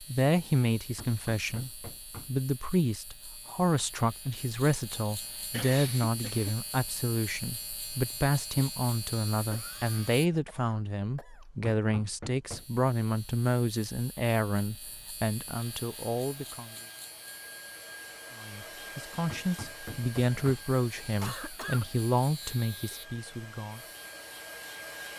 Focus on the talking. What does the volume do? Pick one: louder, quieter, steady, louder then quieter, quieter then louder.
steady.